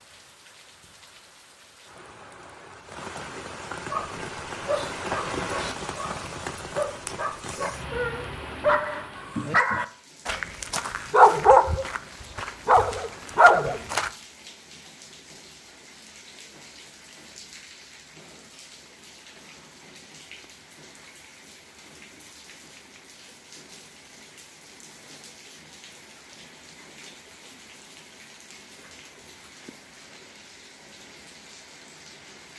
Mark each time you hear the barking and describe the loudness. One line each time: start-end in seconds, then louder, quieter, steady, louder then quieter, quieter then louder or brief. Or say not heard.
3.9-14.1 louder.